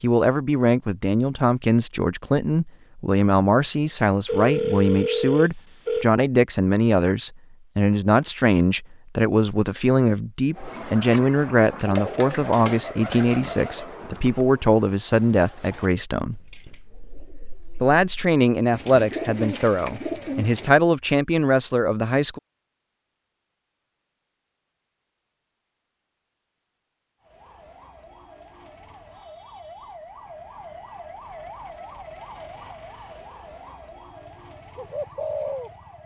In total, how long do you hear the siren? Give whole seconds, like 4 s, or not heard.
9 s.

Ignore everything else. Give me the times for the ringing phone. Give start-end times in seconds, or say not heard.
4.2-6.0.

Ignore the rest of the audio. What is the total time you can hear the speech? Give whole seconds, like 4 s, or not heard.
21 s.